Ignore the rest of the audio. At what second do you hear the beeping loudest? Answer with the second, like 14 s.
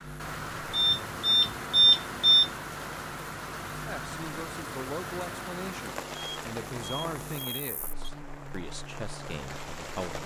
2 s.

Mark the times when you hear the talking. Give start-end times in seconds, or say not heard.
3.9-10.2.